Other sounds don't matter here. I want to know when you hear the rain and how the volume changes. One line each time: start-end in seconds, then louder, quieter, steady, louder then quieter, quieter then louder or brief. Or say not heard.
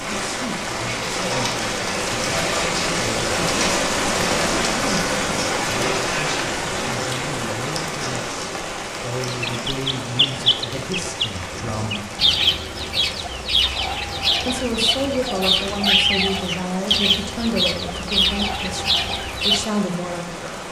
0.0-20.6 quieter.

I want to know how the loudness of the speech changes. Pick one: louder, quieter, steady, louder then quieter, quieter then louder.
louder.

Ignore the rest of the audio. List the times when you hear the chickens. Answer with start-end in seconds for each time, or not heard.
9.2-19.6.